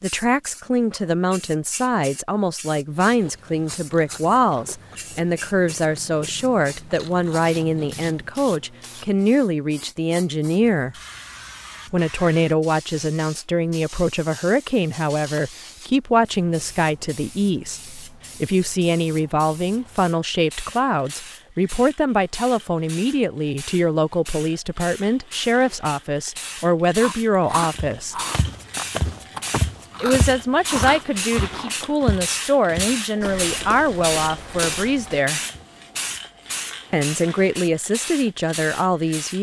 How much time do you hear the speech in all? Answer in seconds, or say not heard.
35 s.